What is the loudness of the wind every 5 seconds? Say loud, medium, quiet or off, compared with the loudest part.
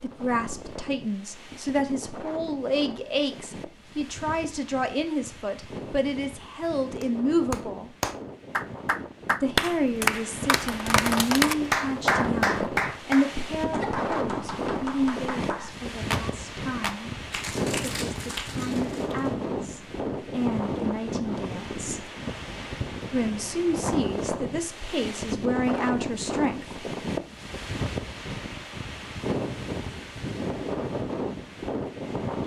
medium, medium, loud, loud, loud, loud, loud.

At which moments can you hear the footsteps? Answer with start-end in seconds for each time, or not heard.
not heard.